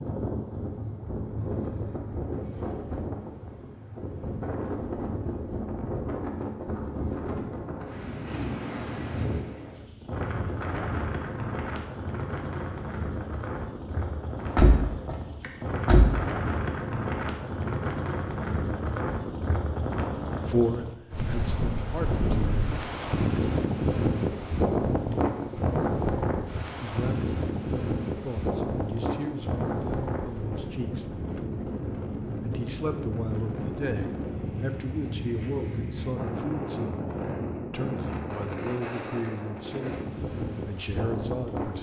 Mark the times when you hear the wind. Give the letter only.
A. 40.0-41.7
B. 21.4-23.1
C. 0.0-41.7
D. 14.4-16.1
C.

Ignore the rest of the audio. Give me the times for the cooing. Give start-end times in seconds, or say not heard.
not heard.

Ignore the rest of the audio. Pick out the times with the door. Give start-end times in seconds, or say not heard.
14.4-16.1.